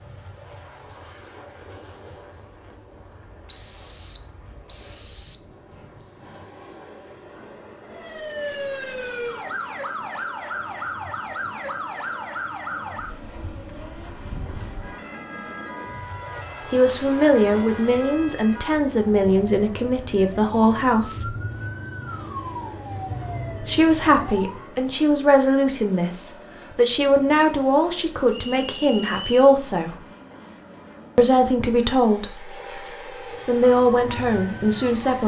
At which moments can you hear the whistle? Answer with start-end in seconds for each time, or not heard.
3.5-5.4, 28.3-29.5.